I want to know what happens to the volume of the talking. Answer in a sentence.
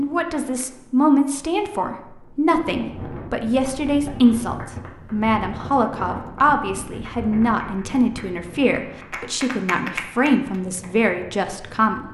The loudness of the talking stays about the same.